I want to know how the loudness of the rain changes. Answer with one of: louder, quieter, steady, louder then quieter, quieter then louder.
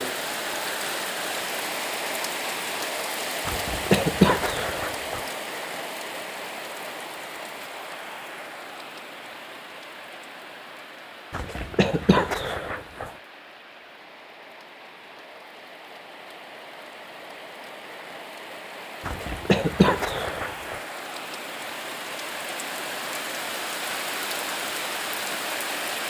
quieter then louder.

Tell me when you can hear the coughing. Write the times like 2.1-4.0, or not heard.
3.5-5.2, 11.3-13.1, 19.0-20.8.